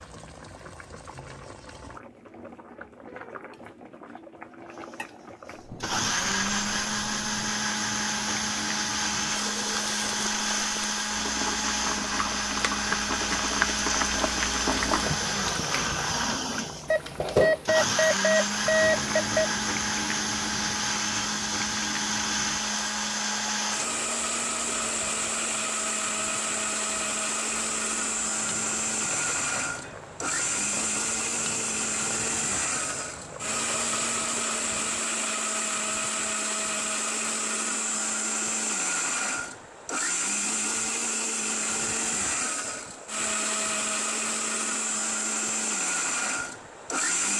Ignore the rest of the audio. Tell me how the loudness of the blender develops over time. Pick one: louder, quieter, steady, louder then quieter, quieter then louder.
steady.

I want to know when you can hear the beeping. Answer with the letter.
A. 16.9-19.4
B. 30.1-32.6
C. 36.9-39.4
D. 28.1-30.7
A.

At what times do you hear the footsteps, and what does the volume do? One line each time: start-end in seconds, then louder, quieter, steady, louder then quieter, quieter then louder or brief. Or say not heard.
not heard.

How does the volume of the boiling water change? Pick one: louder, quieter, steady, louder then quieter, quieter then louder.
louder then quieter.